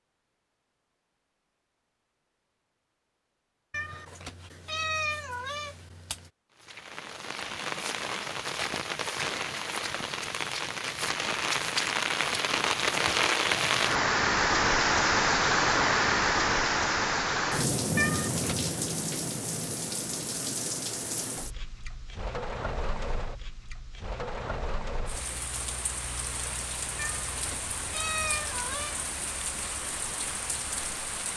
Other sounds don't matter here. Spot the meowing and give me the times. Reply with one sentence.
You can hear the meowing from 3.7 to 6.3 s, from 17.9 to 18.8 s and from 26.9 to 29.0 s.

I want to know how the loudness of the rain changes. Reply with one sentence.
The volume of the rain goes up, then down.